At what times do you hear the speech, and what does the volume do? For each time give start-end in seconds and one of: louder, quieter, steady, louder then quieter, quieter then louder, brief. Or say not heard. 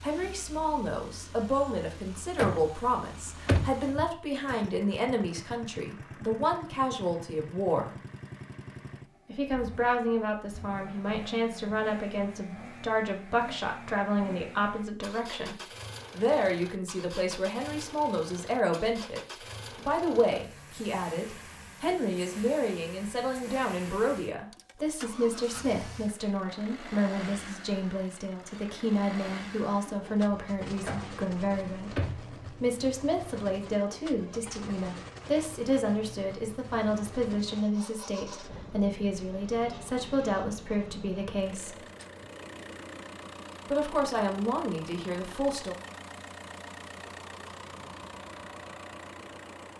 0.0-8.0 steady
9.2-41.8 steady
43.7-45.8 brief.